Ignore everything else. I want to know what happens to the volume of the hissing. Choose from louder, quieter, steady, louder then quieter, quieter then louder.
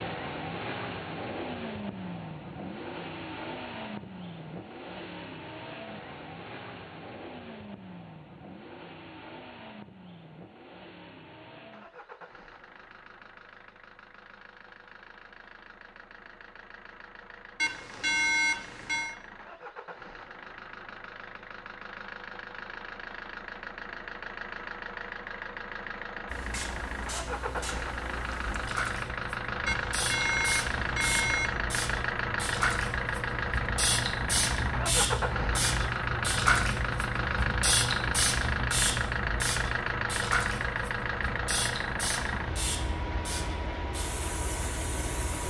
louder then quieter.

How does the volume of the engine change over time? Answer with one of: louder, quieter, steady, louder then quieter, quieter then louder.
quieter then louder.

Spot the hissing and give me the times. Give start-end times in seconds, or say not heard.
26.2-45.4.